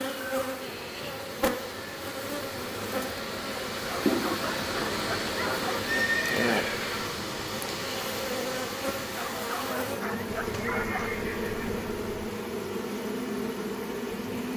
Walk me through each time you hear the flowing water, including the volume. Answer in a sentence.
The flowing water can be heard from 0.0 to 14.5 s, getting louder then quieter.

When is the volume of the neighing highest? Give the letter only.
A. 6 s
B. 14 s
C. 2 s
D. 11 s
A.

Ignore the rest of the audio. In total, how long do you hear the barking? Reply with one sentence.
The barking can be heard for 4 seconds in total.